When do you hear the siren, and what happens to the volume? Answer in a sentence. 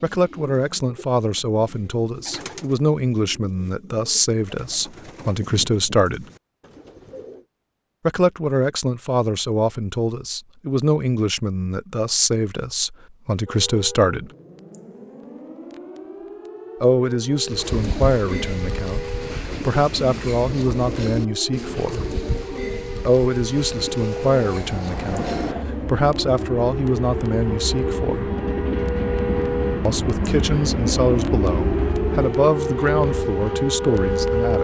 The siren can be heard from 13.4 to 34.6 s, getting louder.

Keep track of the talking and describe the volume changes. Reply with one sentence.
The volume of the talking stays about the same.